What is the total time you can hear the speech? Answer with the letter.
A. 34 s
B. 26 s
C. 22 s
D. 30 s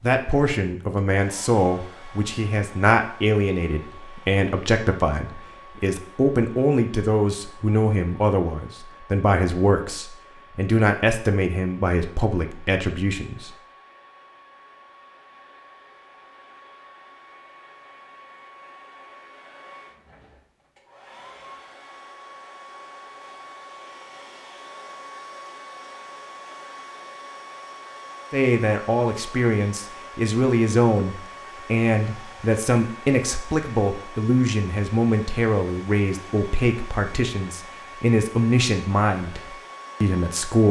B.